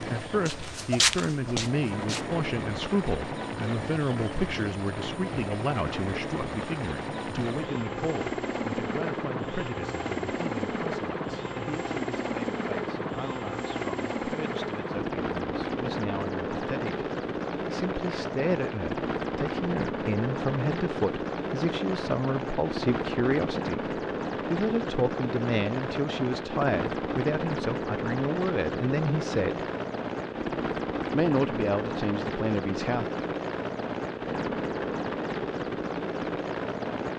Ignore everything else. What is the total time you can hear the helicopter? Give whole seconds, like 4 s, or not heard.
37 s.